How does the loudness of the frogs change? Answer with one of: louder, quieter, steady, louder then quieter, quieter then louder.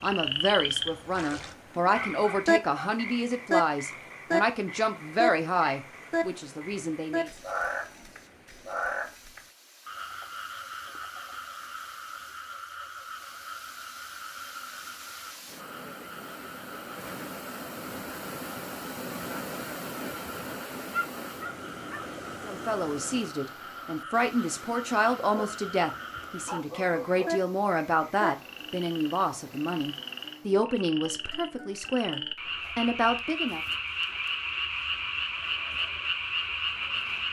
quieter then louder.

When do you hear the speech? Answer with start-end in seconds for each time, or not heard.
0.0-7.3, 22.4-33.6.